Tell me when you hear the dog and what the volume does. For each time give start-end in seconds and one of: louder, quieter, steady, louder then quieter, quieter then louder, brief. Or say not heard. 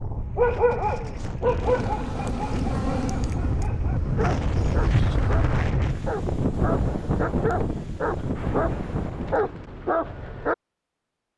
0.3-10.6 quieter then louder.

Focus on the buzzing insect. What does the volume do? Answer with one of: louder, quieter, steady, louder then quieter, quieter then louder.
quieter then louder.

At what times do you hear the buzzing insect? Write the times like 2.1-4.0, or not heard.
1.6-5.7.